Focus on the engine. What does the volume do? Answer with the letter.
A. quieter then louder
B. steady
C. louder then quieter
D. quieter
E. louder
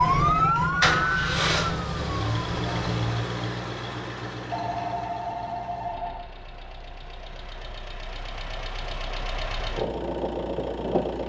A.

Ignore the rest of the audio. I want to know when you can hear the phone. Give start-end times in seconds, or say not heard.
4.5-6.3.